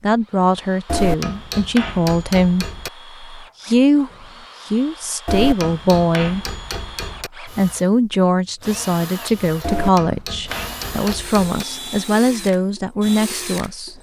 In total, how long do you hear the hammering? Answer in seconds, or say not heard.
6 s.